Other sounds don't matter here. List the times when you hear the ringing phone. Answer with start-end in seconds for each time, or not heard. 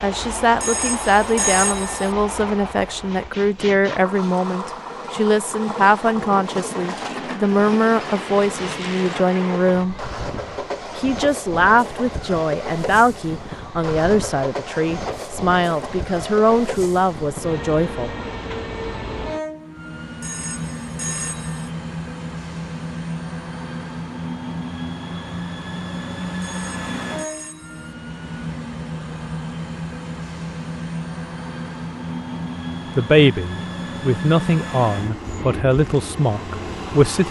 0.6-2.1, 20.2-21.7, 26.4-27.9.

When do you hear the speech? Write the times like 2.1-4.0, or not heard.
0.0-9.9, 10.9-18.1, 33.0-37.2.